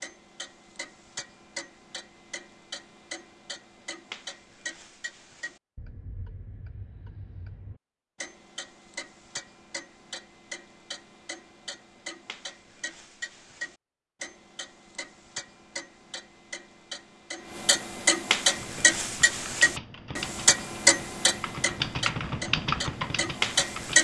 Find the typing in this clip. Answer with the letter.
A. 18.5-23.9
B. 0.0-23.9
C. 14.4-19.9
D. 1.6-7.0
A.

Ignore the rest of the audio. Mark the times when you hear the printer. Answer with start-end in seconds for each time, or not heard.
not heard.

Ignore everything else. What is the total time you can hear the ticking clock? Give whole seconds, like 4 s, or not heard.
24 s.